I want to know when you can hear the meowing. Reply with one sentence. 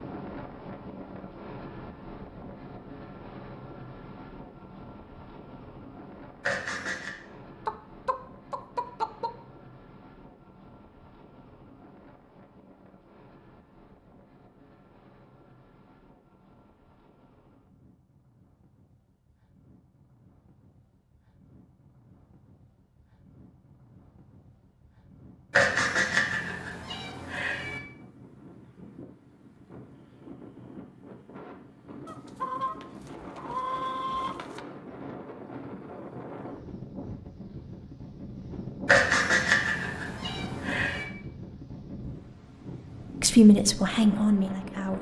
The meowing can be heard from 6.4 to 7.1 s, from 25.5 to 27.8 s and from 38.9 to 41.0 s.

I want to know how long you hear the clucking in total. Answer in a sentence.
The clucking can be heard for 4 seconds in total.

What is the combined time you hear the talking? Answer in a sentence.
You can hear the talking for 2 seconds altogether.